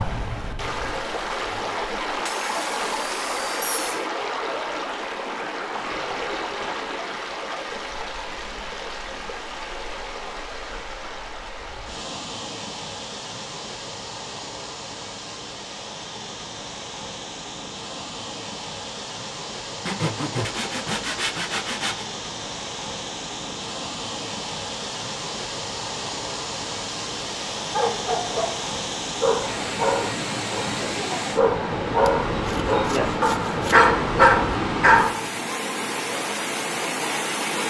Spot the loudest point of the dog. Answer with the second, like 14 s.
34 s.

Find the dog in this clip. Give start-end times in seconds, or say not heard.
27.7-35.4.